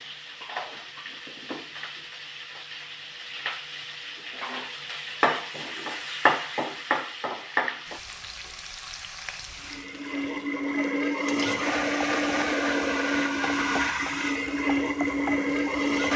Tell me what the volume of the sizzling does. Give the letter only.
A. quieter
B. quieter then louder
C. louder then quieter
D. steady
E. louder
C.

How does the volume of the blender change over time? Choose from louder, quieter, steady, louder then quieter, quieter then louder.
steady.